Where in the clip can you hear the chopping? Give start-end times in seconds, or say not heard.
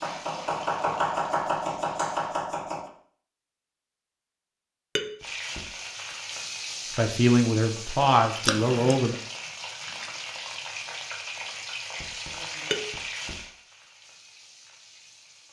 0.0-2.9.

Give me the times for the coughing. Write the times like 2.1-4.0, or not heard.
8.4-8.9.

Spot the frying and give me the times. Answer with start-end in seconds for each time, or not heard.
0.0-2.4, 5.2-15.4.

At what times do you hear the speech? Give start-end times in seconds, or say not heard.
7.0-9.2.